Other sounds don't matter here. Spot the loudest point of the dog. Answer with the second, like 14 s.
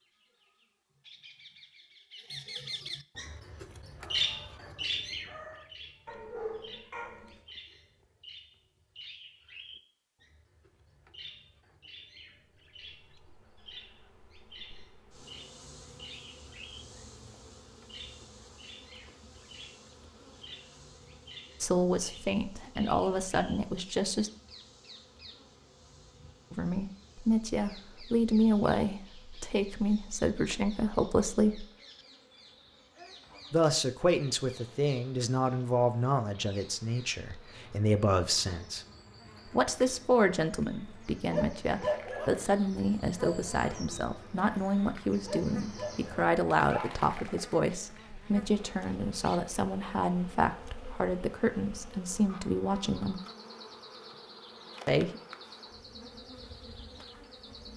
42 s.